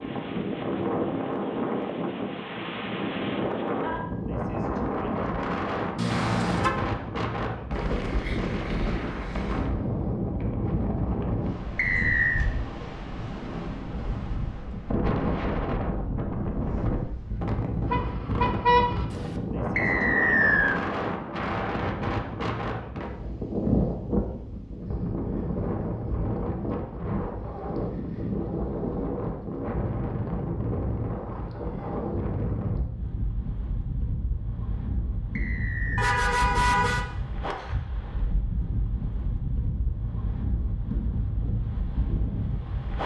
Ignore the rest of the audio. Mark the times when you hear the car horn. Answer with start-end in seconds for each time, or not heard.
6.0-6.7, 17.9-19.4, 36.0-37.0.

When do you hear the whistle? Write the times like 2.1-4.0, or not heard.
11.8-12.4, 19.8-20.8, 35.4-36.1.